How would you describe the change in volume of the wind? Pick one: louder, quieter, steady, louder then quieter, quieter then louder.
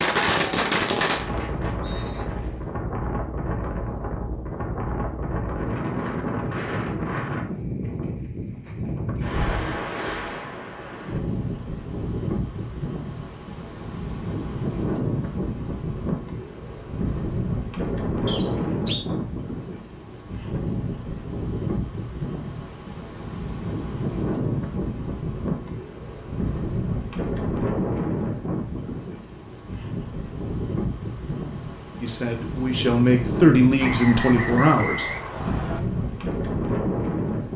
steady.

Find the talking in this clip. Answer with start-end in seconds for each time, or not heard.
32.0-35.1.